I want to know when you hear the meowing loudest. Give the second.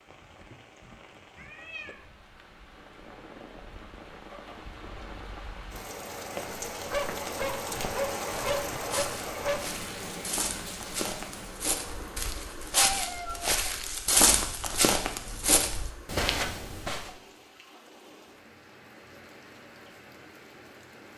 13 s.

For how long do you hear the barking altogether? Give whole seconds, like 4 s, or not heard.
3 s.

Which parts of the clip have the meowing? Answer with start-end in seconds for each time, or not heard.
1.4-2.0, 12.8-13.5.